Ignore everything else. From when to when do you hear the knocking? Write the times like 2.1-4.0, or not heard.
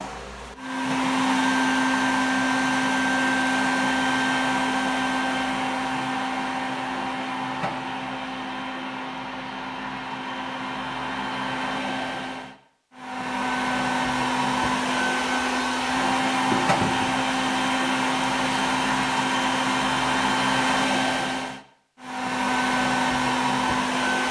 16.5-17.1.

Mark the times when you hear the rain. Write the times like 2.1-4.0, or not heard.
not heard.